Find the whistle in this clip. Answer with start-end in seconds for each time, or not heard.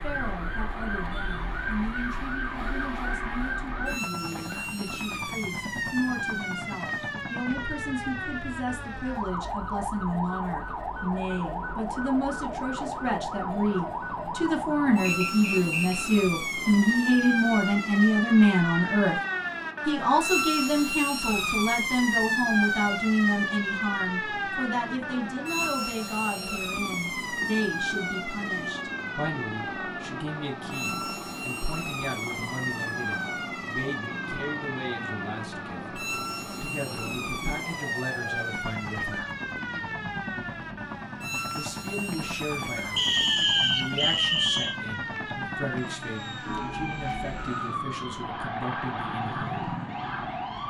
15.1-16.1, 43.0-44.8.